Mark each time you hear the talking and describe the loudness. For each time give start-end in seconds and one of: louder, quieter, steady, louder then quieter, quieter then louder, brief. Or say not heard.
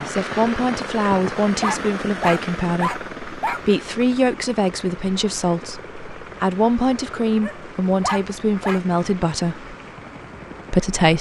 0.1-9.7 steady
10.7-11.1 brief.